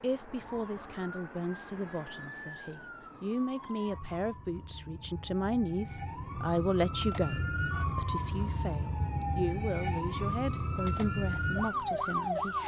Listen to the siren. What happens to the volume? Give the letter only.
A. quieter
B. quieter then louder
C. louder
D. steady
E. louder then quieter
C.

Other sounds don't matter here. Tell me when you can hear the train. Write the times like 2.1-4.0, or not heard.
not heard.